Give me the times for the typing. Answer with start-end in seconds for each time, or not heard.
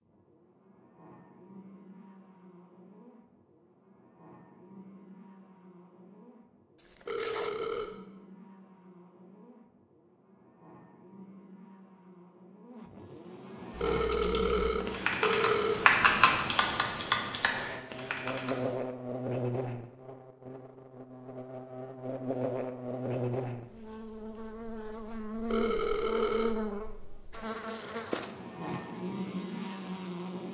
13.7-18.8.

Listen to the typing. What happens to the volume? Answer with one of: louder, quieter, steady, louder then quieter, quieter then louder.
louder then quieter.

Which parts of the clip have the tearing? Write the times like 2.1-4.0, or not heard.
6.8-7.8.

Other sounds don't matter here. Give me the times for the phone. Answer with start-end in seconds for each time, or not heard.
7.0-7.9, 13.8-15.8, 25.4-26.6.